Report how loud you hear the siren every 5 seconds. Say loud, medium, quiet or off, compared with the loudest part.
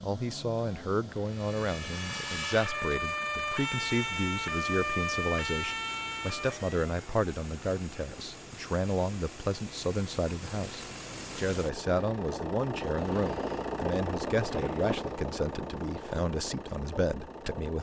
loud, loud, off, off.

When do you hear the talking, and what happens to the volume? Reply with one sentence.
You can hear the talking from 0.0 to 17.7 s, at a steady volume.